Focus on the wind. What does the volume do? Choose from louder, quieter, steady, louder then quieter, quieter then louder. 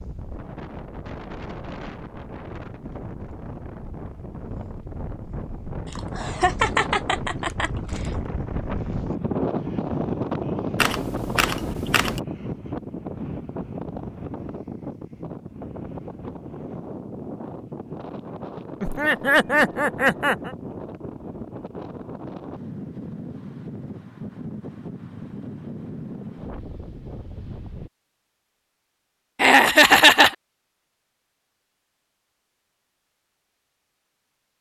louder then quieter.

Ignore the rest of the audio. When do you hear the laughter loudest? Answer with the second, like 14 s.
30 s.